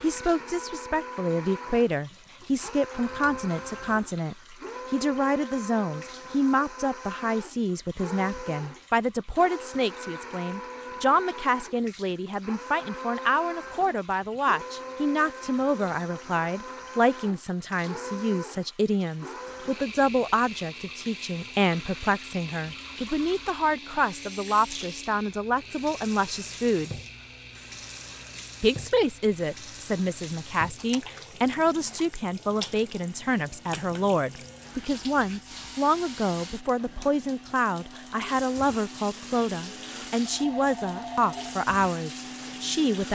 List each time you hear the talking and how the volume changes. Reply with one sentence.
The talking can be heard from 0.0 to 26.9 s, at a steady volume; and from 28.6 to 43.1 s, at a steady volume.